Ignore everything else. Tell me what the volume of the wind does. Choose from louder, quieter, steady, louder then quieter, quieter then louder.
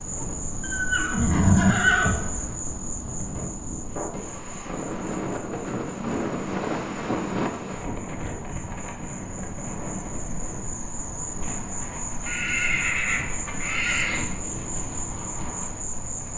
louder then quieter.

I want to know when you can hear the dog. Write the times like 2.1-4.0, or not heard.
not heard.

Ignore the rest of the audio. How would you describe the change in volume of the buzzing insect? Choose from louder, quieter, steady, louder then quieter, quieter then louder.
quieter then louder.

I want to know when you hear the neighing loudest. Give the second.
2 s.